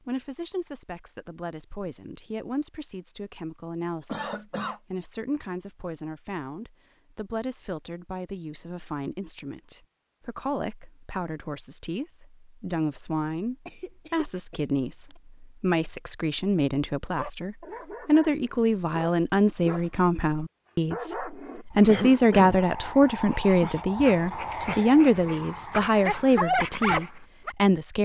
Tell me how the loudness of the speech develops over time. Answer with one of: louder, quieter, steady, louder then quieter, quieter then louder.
louder.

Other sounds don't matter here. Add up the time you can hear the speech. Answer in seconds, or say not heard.
28 s.